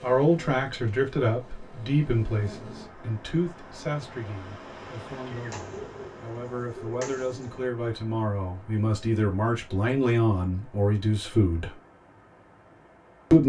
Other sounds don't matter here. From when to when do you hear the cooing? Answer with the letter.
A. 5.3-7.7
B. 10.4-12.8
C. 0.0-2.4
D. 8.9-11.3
A.